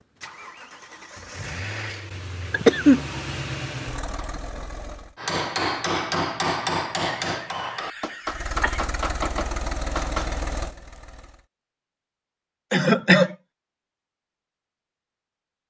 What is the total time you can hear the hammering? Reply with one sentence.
The hammering can be heard for 5 seconds in total.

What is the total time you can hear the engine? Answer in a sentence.
The engine can be heard for 8 seconds in total.